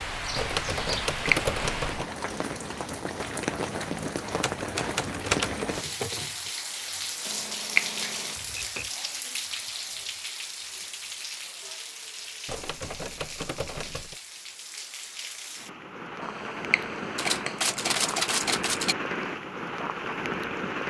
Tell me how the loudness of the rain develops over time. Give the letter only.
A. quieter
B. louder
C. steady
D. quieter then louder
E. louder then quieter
D.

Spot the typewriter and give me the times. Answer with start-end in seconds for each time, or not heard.
0.3-2.0, 4.3-6.5, 8.3-8.9, 12.4-14.2, 17.1-18.9.